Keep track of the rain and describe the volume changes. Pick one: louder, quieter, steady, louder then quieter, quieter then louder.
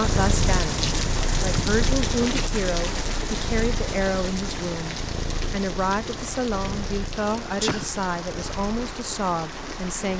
quieter.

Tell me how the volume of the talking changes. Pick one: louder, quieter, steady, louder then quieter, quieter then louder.
steady.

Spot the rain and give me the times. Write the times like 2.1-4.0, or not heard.
0.0-10.1.